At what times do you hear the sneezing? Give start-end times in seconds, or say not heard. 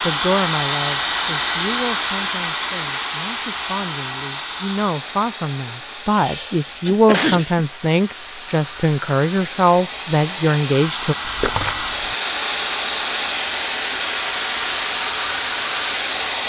5.7-7.7.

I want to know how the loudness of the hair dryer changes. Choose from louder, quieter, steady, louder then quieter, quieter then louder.
quieter then louder.